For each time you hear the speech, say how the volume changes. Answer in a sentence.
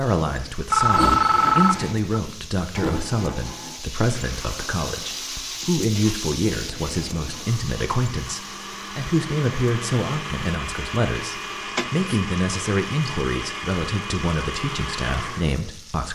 The speech can be heard from 0.0 to 16.1 s, at a steady volume.